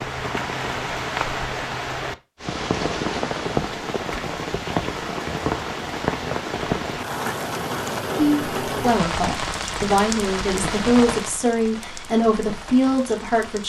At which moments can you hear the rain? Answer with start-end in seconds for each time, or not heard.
0.0-13.6.